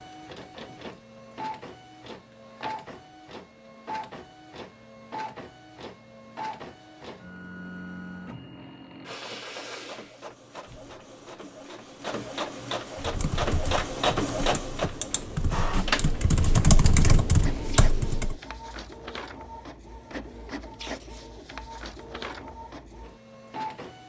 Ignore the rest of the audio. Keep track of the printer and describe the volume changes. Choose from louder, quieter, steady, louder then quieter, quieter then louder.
louder then quieter.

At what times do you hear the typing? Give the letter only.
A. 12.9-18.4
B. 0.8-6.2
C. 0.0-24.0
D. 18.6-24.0
A.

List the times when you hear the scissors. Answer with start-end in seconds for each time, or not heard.
not heard.